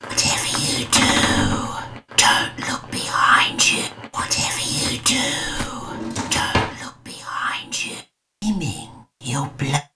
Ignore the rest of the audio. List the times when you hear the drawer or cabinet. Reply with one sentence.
The drawer or cabinet can be heard from 0.9 to 1.7 s and from 5.8 to 6.8 s.